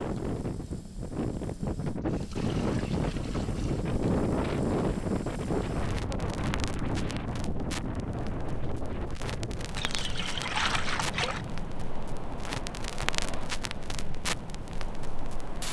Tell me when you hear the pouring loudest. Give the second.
11 s.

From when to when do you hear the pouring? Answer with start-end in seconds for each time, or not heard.
2.0-3.9, 9.8-11.4.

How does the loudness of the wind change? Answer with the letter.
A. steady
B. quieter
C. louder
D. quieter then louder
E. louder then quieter
B.